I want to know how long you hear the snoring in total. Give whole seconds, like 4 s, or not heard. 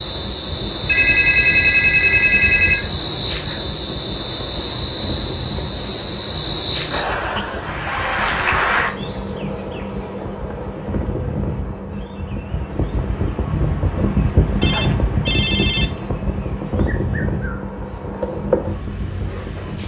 not heard.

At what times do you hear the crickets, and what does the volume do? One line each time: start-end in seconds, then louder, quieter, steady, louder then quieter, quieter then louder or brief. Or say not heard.
0.0-19.8 quieter then louder.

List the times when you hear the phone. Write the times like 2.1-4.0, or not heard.
0.8-2.9, 7.3-8.1, 14.6-15.9.